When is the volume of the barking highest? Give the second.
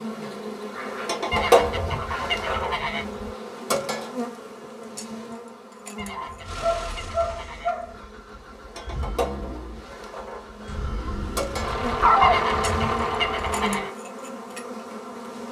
12 s.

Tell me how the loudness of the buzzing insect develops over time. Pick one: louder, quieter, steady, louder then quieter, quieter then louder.
quieter then louder.